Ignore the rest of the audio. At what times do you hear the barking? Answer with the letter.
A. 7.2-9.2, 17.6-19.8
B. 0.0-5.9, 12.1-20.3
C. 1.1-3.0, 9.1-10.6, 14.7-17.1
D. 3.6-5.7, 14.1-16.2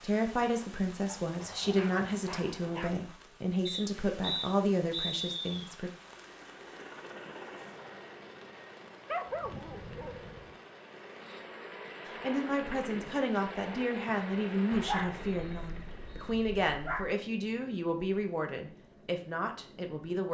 C.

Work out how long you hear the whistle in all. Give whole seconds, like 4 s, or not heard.
4 s.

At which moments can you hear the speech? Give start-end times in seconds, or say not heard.
0.0-5.9, 12.1-20.3.